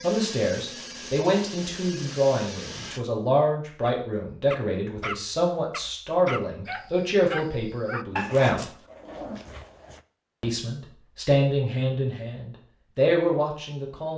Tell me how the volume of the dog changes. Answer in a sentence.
The volume of the dog goes down.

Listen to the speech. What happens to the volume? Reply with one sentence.
The volume of the speech stays about the same.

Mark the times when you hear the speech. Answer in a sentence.
The speech can be heard from 0.0 to 8.7 s and from 10.4 to 14.1 s.